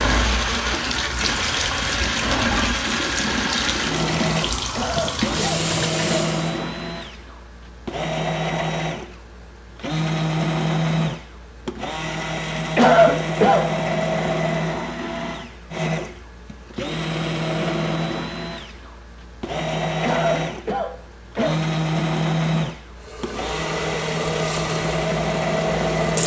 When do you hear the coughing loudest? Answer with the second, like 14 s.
13 s.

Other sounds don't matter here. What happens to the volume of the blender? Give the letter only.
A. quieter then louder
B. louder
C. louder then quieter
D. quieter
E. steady
E.